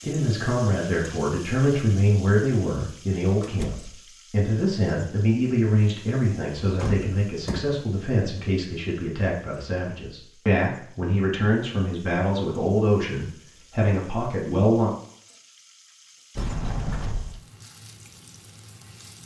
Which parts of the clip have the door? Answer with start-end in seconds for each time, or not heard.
3.4-4.0, 6.6-7.8, 16.4-17.4.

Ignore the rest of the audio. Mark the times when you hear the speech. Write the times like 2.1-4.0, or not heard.
0.0-14.9.